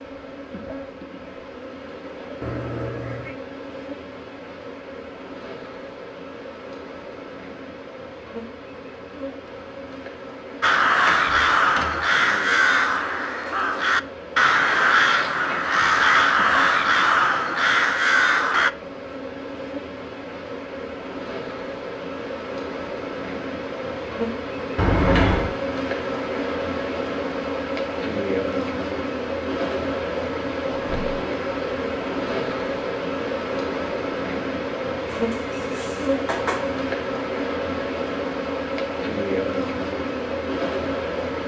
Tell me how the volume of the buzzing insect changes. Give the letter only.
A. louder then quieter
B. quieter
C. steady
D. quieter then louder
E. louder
E.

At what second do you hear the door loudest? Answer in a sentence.
The loudest moment of the door is at 25 seconds.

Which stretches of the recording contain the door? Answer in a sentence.
You can hear the door from 11.1 to 12.1 s, from 24.8 to 25.6 s and from 30.7 to 31.4 s.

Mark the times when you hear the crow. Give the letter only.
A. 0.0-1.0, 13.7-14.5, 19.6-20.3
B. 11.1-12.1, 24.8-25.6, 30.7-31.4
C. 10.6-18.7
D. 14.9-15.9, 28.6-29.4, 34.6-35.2
C.